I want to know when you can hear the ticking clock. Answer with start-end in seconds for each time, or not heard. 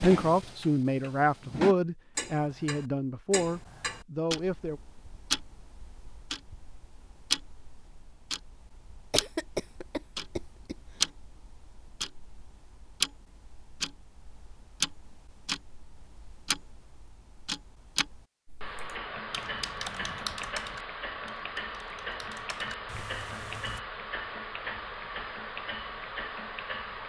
0.0-27.0.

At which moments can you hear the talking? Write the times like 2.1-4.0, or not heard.
0.0-4.8.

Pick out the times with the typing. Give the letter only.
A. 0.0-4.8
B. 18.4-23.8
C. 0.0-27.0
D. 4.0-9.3
B.